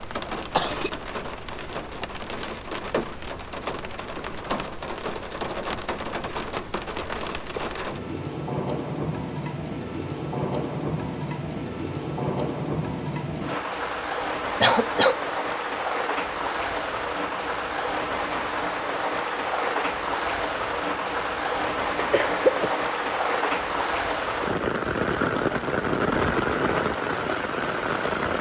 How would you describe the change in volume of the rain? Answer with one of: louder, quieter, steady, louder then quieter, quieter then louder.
louder.